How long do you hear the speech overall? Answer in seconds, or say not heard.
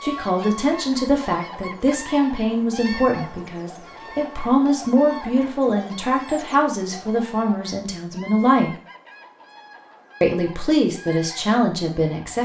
11 s.